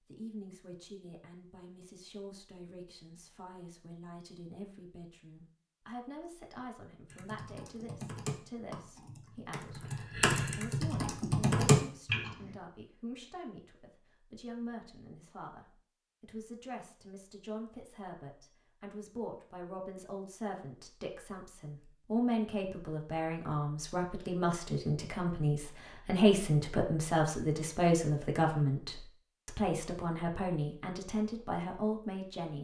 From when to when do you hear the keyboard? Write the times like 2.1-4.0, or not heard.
7.1-12.3.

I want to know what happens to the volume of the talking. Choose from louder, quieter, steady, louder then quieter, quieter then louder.
louder.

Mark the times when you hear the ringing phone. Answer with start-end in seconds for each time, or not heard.
not heard.